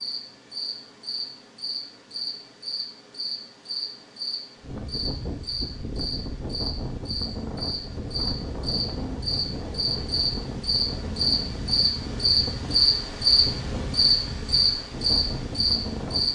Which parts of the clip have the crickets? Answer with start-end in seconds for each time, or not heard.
0.0-16.3.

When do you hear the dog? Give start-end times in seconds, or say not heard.
not heard.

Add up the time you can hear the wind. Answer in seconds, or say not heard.
12 s.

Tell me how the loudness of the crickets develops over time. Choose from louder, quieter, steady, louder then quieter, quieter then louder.
louder.